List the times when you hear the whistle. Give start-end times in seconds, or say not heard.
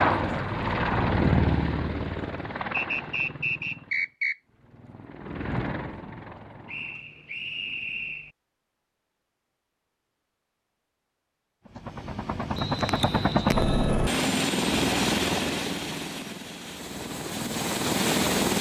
2.7-4.3, 6.7-8.3, 12.5-13.8.